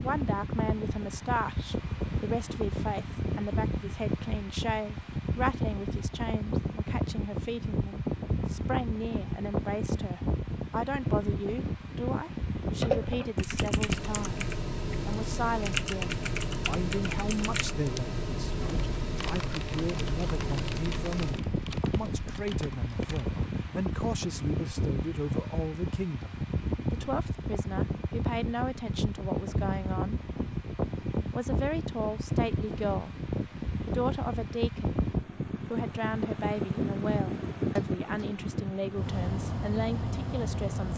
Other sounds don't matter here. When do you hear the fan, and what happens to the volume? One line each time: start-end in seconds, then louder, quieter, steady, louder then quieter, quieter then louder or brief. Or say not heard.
0.0-40.9 steady.